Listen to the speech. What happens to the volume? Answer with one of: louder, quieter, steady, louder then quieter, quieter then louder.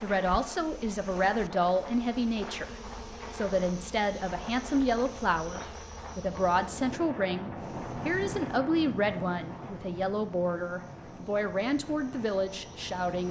steady.